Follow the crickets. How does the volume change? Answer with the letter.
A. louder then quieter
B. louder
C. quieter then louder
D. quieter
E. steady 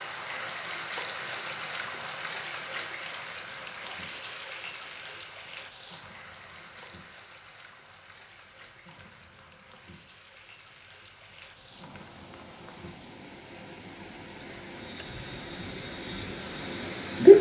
B.